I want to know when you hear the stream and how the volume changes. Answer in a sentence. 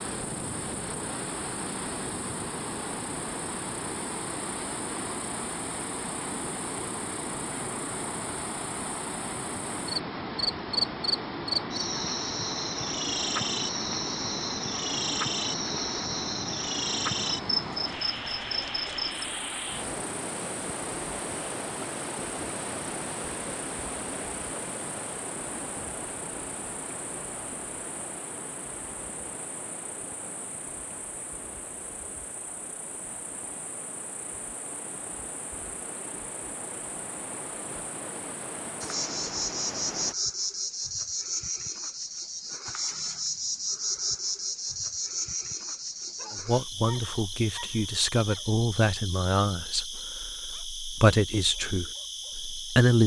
The stream can be heard from 0.0 to 40.1 s, getting quieter.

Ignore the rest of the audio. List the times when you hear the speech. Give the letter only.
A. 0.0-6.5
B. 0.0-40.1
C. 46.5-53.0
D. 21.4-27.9
C.